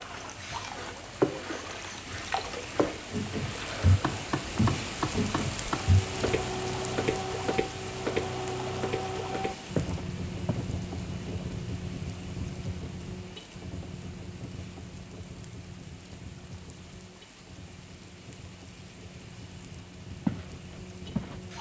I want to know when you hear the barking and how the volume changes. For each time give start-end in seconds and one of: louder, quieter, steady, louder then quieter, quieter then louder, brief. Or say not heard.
not heard.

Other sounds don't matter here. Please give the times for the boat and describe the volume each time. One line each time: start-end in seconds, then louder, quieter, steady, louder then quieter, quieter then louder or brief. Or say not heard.
0.0-21.5 quieter.